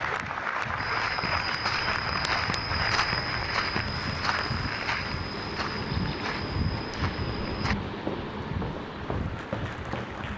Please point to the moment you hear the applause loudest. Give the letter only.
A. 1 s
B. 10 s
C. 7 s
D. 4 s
A.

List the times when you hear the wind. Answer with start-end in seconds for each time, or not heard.
0.0-10.3.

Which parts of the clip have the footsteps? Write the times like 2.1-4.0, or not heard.
0.8-10.1.